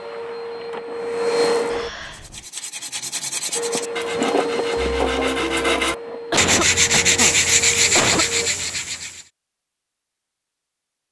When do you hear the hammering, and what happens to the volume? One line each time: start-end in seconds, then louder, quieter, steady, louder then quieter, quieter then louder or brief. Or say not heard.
not heard.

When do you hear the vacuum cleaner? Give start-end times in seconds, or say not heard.
0.0-1.9, 3.5-8.5.